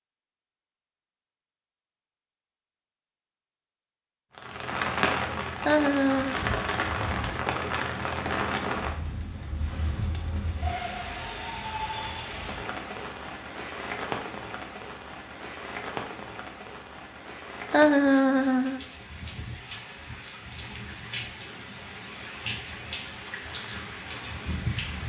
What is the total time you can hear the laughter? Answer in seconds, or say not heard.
2 s.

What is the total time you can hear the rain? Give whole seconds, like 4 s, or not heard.
21 s.